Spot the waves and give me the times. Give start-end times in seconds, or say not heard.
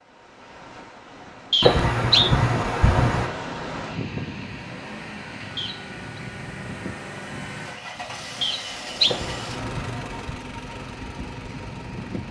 0.0-12.2.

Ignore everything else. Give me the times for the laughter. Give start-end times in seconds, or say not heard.
1.6-3.3, 9.1-10.4.